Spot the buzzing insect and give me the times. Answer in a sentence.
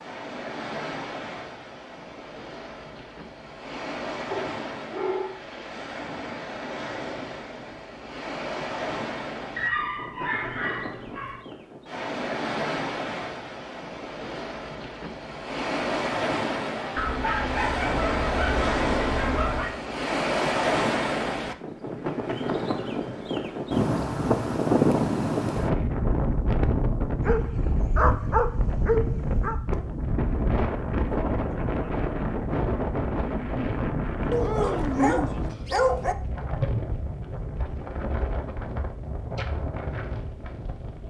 You can't hear the buzzing insect here.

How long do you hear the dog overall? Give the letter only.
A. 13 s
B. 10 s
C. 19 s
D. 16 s
B.